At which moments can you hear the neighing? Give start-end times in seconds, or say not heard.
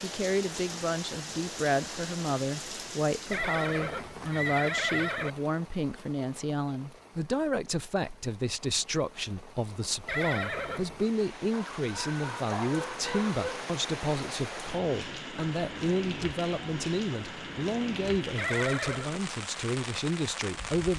3.3-5.3, 10.1-11.1, 18.4-19.1.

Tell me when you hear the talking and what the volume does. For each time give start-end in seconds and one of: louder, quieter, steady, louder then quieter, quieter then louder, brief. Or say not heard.
0.0-20.9 steady.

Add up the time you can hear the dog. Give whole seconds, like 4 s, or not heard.
2 s.